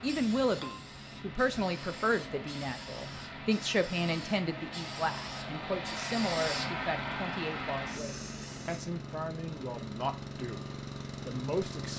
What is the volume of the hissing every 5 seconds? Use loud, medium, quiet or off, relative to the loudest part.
medium, loud, off.